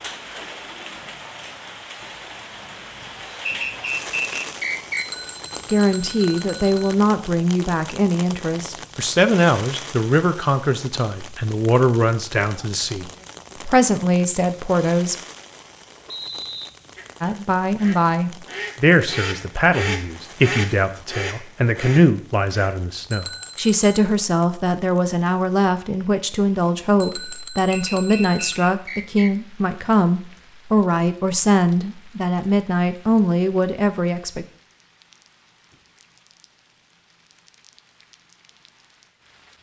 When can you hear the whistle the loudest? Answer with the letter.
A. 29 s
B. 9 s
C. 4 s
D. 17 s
C.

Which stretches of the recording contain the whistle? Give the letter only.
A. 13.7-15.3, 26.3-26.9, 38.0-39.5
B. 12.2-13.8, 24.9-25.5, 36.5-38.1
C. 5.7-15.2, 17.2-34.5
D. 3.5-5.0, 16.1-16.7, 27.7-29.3
D.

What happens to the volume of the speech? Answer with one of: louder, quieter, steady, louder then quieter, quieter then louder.
steady.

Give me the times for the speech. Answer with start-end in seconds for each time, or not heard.
5.7-15.2, 17.2-34.5.